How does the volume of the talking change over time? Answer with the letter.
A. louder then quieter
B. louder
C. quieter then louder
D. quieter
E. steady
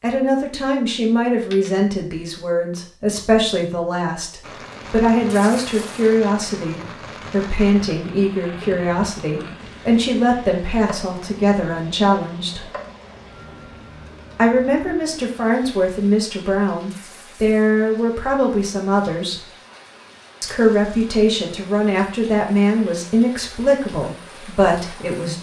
E.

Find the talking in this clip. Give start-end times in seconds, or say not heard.
0.0-12.7, 14.3-19.4, 20.4-25.3.